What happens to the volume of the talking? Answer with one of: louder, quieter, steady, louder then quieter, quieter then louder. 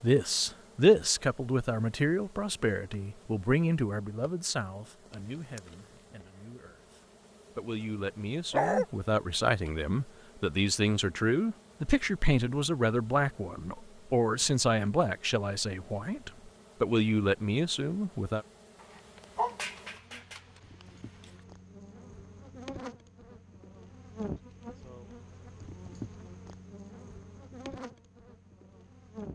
quieter then louder.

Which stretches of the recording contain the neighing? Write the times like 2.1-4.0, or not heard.
not heard.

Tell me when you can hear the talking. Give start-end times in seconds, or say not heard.
0.0-18.4.